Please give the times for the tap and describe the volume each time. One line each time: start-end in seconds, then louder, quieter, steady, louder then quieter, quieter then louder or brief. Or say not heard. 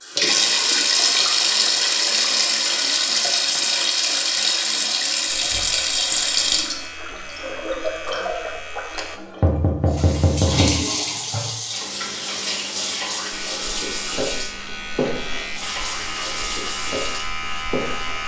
0.0-18.2 quieter.